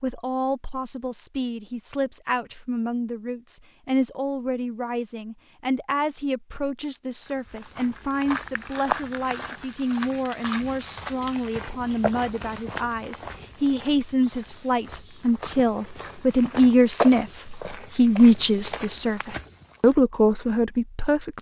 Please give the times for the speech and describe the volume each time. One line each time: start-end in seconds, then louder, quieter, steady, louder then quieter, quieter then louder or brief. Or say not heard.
0.0-21.3 louder.